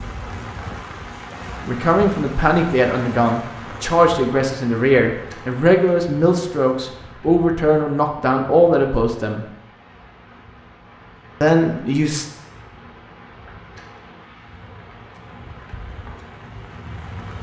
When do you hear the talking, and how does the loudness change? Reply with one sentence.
You can hear the talking from 1.6 to 9.4 s, at a steady volume; and briefly from 11.4 to 12.2 s.